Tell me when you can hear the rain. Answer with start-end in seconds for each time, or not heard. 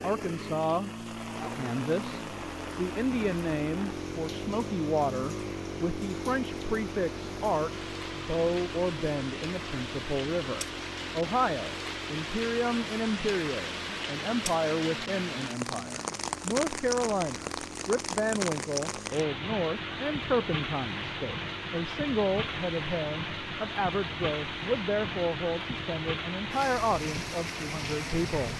0.0-28.5.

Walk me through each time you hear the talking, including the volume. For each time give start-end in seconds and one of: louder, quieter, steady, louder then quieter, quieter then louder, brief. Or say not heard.
0.0-0.9 brief
1.5-28.5 steady.